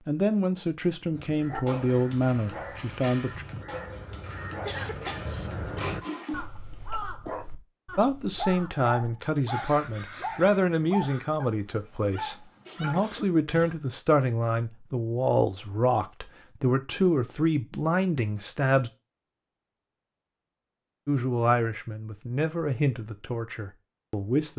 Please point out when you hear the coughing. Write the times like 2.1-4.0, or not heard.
4.7-5.5, 12.9-13.8.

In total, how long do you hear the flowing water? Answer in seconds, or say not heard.
not heard.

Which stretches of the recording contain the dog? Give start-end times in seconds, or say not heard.
1.3-13.2.